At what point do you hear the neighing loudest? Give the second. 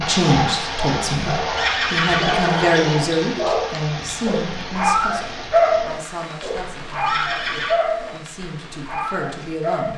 2 s.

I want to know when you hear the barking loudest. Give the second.
6 s.